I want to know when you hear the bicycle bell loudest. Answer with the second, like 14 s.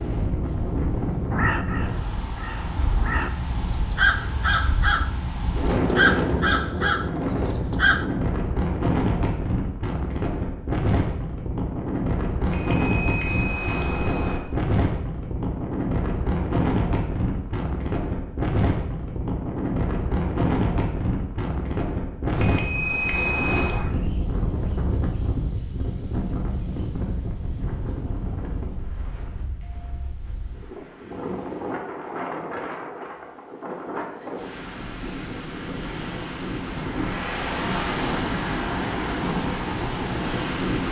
23 s.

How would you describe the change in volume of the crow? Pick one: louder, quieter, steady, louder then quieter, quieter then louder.
louder.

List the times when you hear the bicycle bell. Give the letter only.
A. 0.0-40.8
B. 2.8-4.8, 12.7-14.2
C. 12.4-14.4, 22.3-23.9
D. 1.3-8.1
C.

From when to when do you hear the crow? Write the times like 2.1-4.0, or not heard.
1.3-8.1.